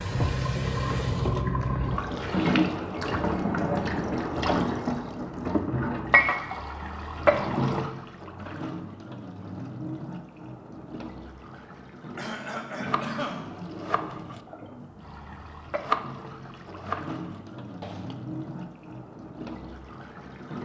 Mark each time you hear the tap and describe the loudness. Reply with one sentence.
You can hear the tap from 0.0 to 20.5 s, getting quieter.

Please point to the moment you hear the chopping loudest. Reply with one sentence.
The volume of the chopping peaks at 16 seconds.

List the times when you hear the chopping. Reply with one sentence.
You can hear the chopping from 12.8 to 18.1 s.